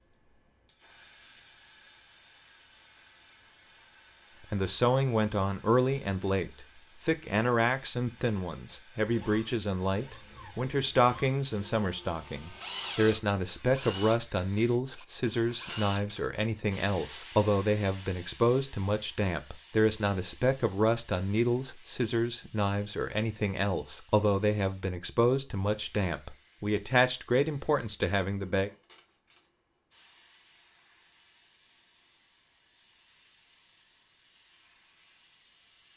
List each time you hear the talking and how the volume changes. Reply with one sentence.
The talking can be heard from 4.5 to 28.7 s, at a steady volume.